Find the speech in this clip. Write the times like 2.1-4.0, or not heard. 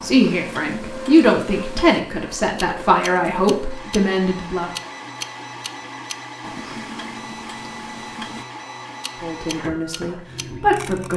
0.0-4.7, 9.2-11.1.